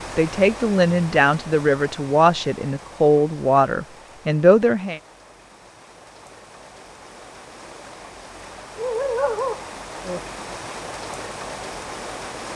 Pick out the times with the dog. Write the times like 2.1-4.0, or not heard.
8.8-10.2.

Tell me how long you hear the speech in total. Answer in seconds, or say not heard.
5 s.